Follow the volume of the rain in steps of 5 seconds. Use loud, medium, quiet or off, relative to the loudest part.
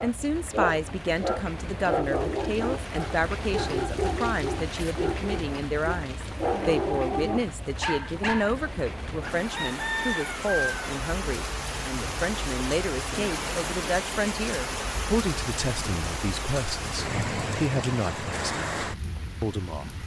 medium, medium, loud, loud.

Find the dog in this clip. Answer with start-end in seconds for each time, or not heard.
0.0-8.7.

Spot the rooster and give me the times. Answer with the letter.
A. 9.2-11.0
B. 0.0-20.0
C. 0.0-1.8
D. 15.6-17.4
A.